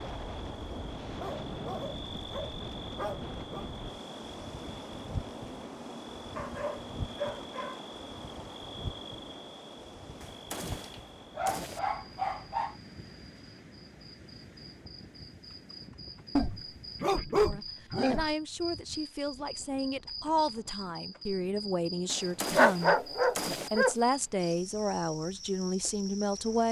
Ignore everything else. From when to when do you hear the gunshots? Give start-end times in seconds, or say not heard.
10.2-11.8, 22.1-23.7.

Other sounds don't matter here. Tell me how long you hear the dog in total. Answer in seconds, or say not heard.
9 s.